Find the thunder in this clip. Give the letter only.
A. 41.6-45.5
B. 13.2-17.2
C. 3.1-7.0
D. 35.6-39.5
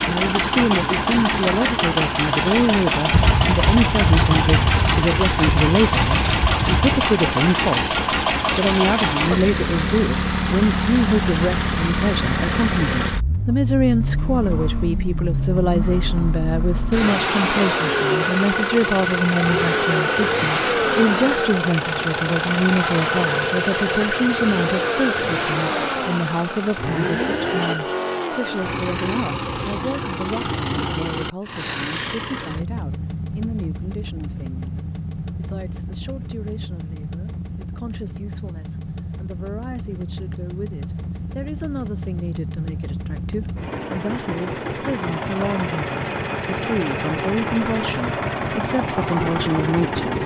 C.